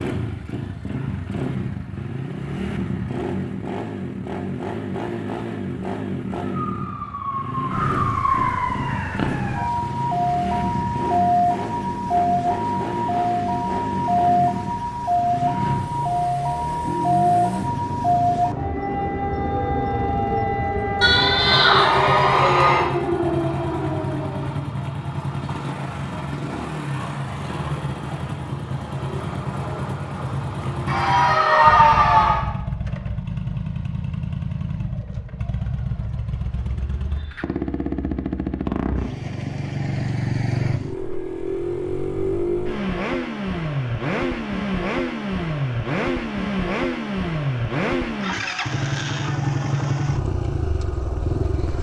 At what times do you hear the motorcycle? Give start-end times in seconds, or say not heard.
0.0-51.7.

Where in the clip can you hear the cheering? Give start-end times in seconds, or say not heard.
21.0-22.9, 30.9-32.5.